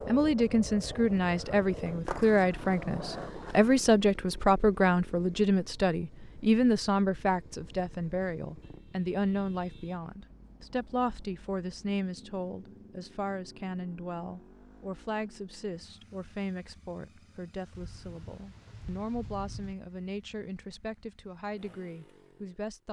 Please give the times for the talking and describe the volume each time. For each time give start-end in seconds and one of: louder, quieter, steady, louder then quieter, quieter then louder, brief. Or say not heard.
0.1-22.8 quieter.